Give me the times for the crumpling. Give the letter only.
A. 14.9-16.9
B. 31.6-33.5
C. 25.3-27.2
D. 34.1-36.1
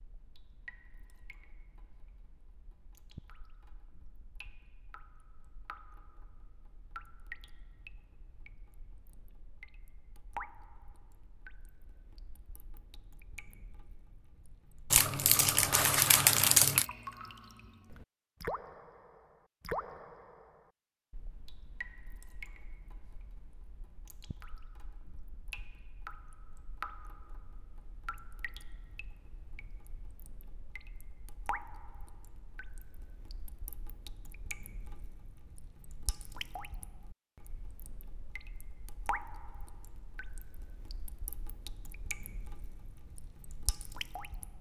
A.